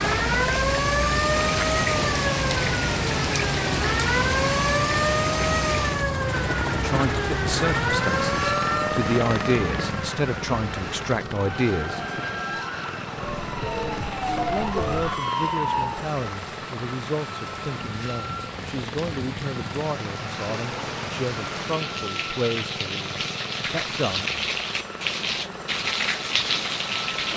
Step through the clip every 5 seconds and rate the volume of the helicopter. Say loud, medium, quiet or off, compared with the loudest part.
loud, loud, medium, medium, medium, medium.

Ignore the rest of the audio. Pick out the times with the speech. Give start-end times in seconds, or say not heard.
6.7-12.0, 14.4-24.4.